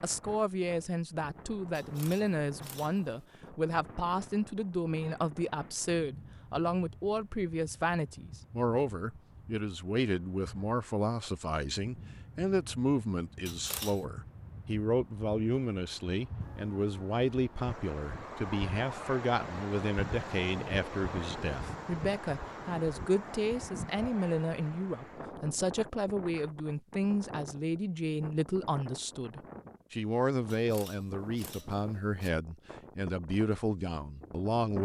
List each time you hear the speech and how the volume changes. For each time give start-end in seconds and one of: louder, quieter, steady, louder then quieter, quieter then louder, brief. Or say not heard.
0.0-34.7 steady.